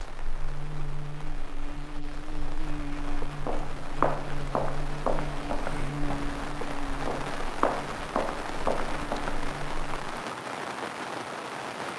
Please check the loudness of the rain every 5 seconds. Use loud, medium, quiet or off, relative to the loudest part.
medium, loud, loud.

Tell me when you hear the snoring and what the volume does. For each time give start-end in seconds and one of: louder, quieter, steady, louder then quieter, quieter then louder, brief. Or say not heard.
not heard.